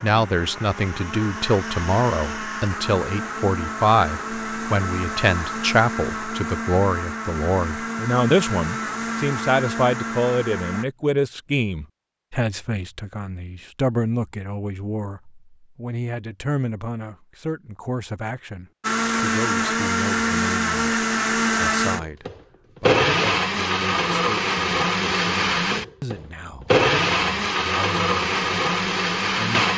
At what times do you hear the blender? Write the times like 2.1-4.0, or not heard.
0.0-10.8, 18.8-29.7.